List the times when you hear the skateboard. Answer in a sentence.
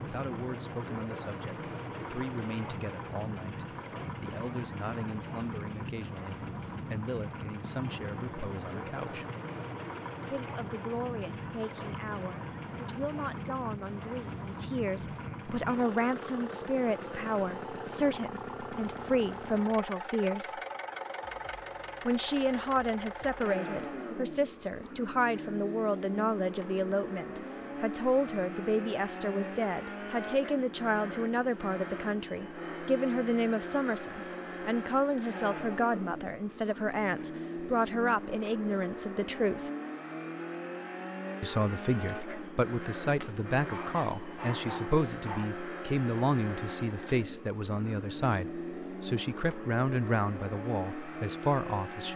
You can't hear the skateboard here.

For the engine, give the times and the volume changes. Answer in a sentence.
You can hear the engine from 0.0 to 52.1 s, at a steady volume.